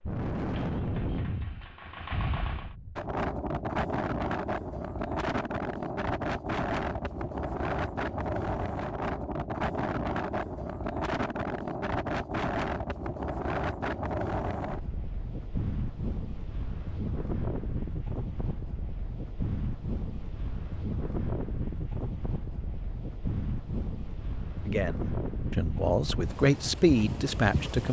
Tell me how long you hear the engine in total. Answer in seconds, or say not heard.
3 s.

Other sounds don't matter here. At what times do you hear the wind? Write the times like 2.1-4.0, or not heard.
0.0-27.8.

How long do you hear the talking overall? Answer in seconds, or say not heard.
3 s.